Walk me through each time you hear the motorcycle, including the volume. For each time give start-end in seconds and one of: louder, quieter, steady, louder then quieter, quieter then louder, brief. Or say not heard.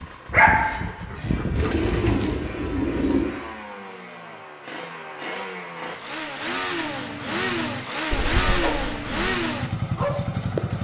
0.0-10.8 louder.